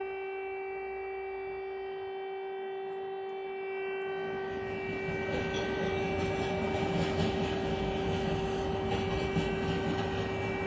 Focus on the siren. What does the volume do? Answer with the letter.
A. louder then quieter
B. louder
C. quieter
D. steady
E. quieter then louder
D.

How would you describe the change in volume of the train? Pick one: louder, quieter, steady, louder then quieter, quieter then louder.
louder.